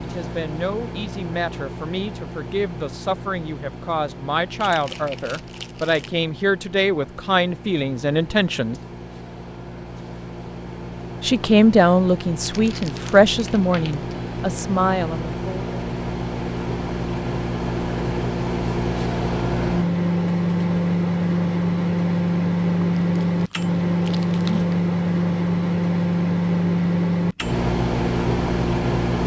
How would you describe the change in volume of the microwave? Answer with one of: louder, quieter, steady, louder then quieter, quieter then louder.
louder.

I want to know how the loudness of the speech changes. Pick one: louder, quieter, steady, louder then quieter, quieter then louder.
louder.